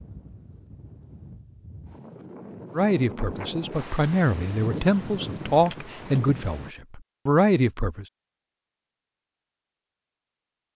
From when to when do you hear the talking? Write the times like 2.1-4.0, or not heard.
2.8-8.1.